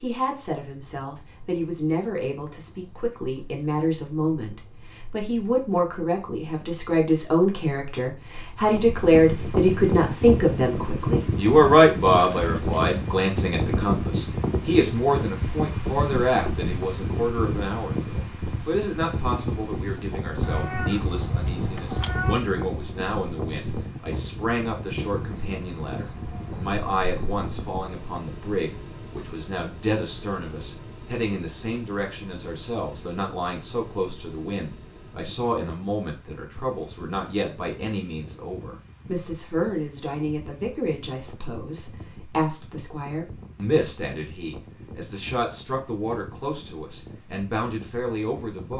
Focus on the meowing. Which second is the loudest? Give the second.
22 s.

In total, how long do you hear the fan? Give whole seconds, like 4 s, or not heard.
40 s.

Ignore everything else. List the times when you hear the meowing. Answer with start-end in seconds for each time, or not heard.
20.4-22.4.